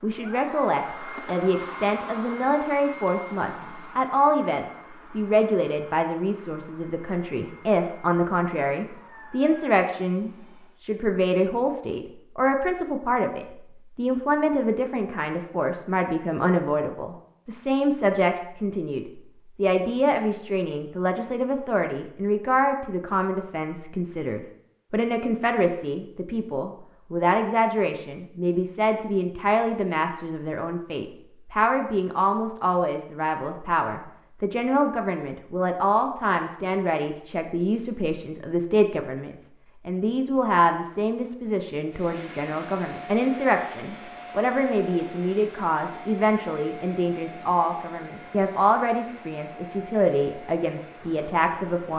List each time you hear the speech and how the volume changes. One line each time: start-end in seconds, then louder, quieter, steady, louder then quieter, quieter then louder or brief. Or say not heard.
0.0-51.9 steady.